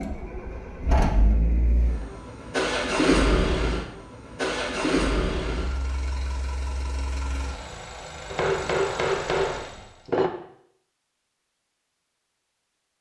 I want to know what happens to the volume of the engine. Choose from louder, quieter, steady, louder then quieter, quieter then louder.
louder then quieter.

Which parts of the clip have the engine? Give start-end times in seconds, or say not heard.
0.0-10.1.